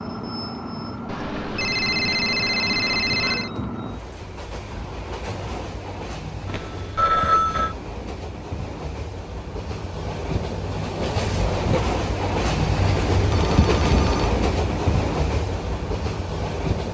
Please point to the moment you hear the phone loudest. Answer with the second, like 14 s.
7 s.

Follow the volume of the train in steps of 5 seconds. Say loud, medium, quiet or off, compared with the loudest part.
medium, medium, loud, loud.